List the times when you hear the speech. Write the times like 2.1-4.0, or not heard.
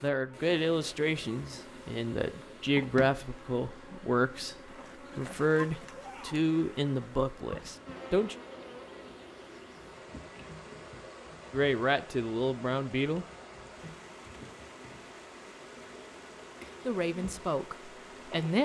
0.0-4.5, 5.2-8.3, 11.5-13.2, 16.9-18.5.